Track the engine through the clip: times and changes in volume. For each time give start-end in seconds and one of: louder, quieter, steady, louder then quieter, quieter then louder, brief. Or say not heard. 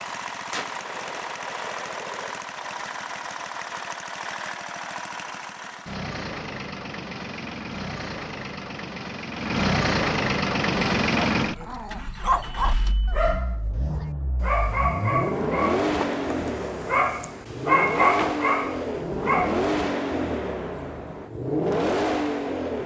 0.0-22.8 louder.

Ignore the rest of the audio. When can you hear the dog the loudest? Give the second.
18 s.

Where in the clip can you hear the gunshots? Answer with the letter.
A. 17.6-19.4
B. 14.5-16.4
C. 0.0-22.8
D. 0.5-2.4
D.